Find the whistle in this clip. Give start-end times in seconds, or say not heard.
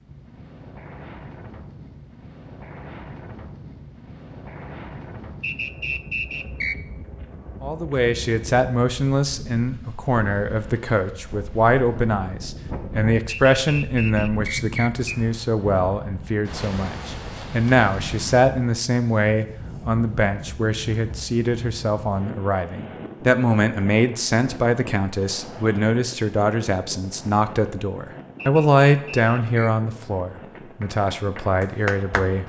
5.4-6.8, 13.2-15.1, 28.4-29.7.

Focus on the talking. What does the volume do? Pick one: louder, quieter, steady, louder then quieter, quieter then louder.
steady.